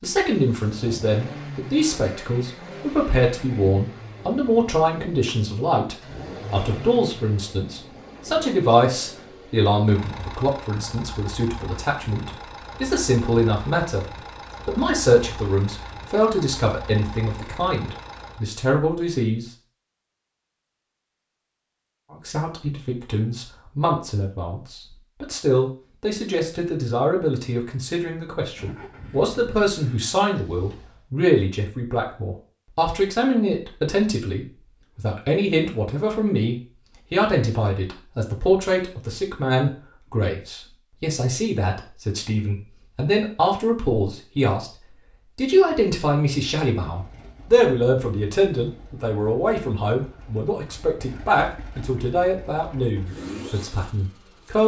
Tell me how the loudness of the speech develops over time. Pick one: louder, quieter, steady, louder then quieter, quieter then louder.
steady.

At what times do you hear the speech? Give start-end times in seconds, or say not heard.
0.0-14.1, 14.7-19.4, 22.1-54.6.